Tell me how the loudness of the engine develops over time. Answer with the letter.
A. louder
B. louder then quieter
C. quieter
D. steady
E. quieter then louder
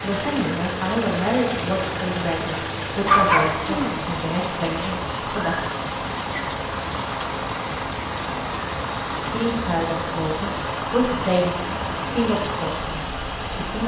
D.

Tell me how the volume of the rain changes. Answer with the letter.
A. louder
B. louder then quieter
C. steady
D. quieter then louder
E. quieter
C.